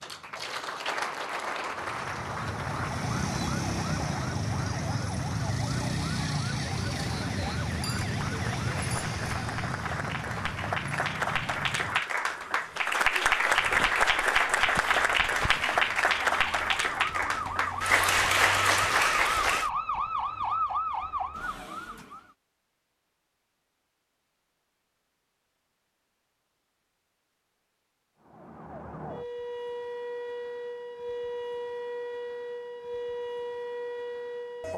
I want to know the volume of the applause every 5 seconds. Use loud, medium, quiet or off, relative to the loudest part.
medium, quiet, loud, loud, off, off, off.